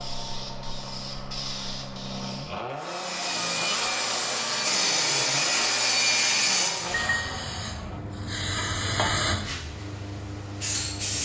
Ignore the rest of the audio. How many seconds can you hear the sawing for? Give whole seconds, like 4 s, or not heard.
4 s.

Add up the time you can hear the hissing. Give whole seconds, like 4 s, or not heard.
7 s.